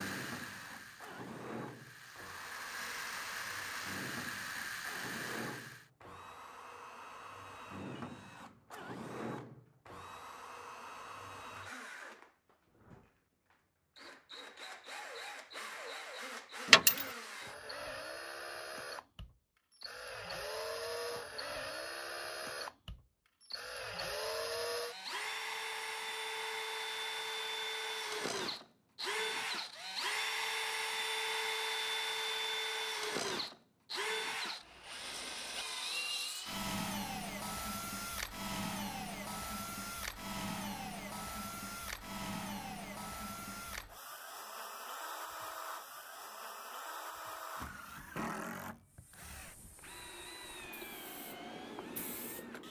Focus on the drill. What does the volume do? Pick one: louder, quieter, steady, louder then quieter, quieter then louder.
louder then quieter.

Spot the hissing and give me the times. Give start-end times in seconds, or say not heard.
0.0-5.9, 48.8-52.6.